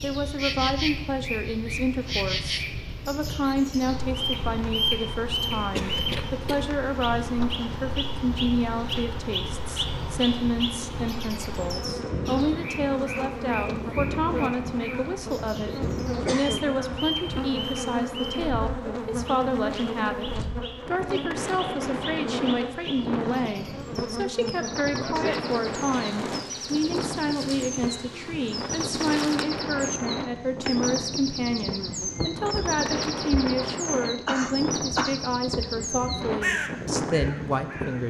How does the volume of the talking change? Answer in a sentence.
The loudness of the talking stays about the same.